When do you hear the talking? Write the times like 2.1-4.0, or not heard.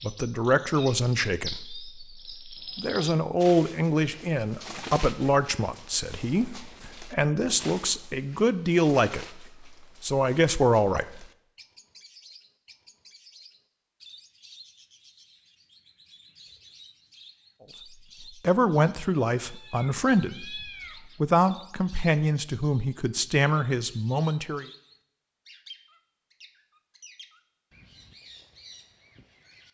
0.0-11.2, 18.2-24.6.